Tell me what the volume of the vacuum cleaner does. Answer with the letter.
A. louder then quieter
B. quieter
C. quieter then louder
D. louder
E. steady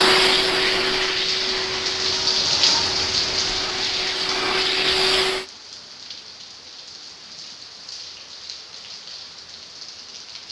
C.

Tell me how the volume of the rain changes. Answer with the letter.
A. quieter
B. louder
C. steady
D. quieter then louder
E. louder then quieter
A.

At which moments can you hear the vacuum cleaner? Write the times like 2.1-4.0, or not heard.
0.0-5.5.